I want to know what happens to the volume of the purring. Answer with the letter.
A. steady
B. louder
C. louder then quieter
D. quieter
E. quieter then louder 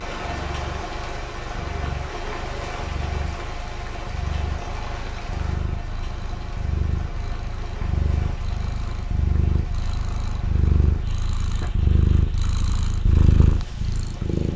B.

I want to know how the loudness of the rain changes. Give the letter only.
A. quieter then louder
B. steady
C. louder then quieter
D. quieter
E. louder
D.